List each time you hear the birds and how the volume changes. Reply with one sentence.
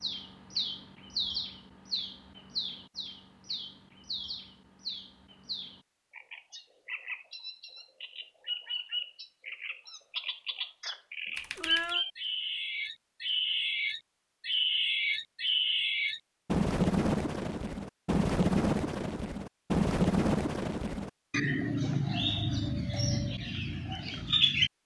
The birds can be heard from 0.0 to 24.7 s, getting louder.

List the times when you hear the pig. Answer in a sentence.
You can't hear the pig here.